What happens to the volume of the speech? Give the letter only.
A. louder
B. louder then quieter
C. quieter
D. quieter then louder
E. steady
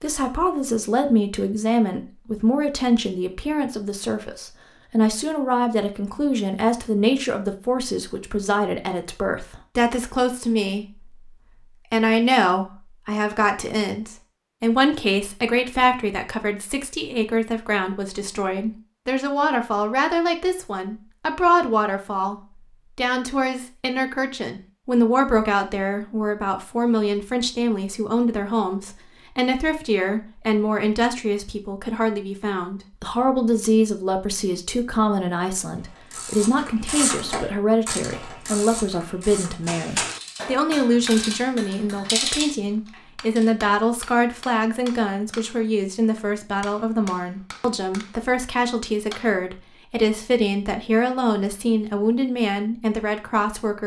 E.